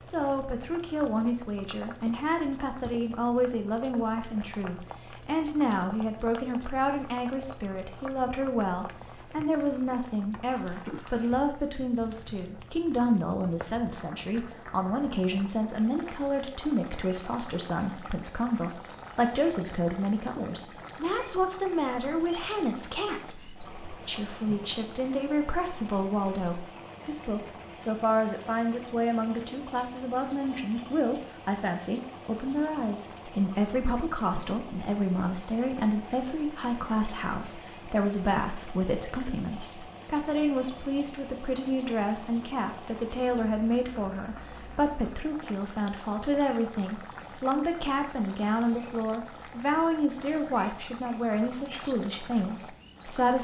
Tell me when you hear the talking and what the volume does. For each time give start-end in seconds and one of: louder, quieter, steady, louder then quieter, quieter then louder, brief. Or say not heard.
0.0-53.3 steady.